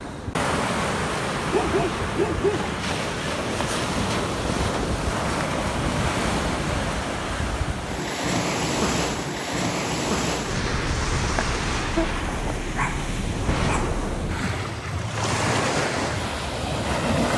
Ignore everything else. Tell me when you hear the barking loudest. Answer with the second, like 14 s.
2 s.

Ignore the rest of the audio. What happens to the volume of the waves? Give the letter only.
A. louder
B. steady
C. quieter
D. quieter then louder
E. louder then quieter
B.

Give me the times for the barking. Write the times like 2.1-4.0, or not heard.
1.5-2.7, 11.3-13.8.